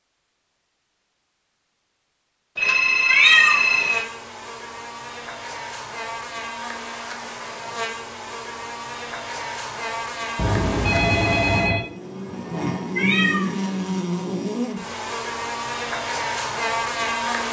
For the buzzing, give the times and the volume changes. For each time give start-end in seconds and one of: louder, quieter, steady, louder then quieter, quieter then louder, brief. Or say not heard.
3.0-17.4 louder.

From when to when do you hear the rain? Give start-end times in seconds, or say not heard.
not heard.